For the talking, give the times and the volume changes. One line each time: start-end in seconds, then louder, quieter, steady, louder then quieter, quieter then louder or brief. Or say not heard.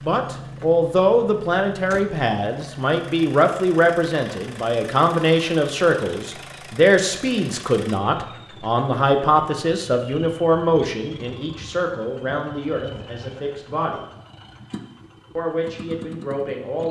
0.1-14.0 quieter
15.3-16.8 brief.